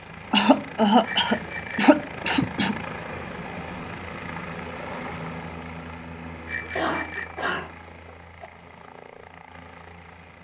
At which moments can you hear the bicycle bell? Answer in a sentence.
You can hear the bicycle bell from 1.0 to 2.0 s and from 6.5 to 7.5 s.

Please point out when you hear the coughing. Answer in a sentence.
The coughing can be heard from 0.3 to 2.8 s and from 6.6 to 8.5 s.